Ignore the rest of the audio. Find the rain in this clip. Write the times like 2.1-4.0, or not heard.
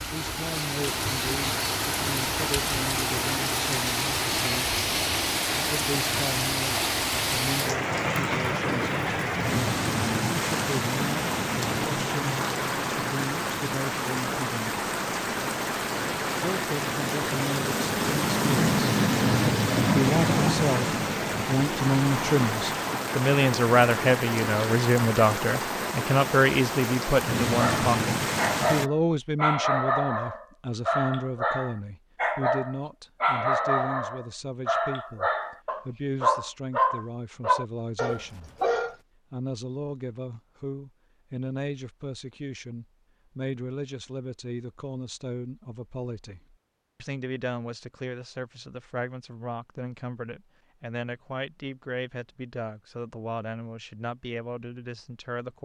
0.0-28.9.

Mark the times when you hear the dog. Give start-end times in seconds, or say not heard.
27.4-39.0.